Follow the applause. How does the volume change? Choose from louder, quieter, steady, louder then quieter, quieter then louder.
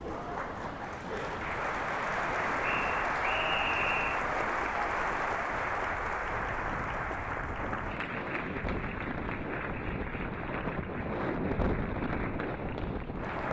quieter.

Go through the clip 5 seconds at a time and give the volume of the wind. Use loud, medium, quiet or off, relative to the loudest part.
quiet, medium, loud.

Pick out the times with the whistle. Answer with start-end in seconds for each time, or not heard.
2.6-4.2.